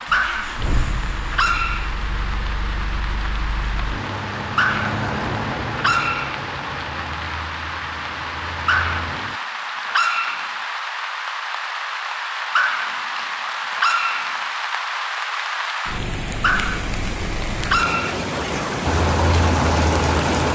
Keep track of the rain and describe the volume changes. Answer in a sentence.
The volume of the rain goes up.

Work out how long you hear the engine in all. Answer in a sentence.
You can hear the engine for 11 seconds altogether.